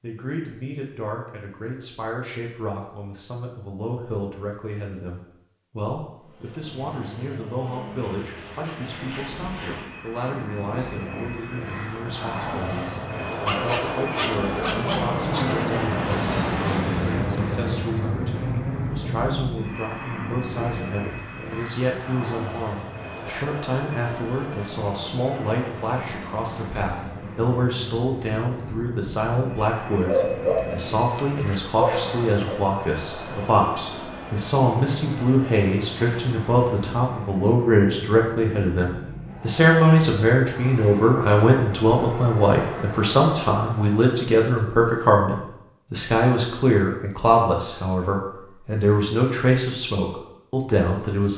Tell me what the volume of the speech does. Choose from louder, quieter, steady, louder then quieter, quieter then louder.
louder.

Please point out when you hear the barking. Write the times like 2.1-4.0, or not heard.
13.4-15.4, 29.9-32.6.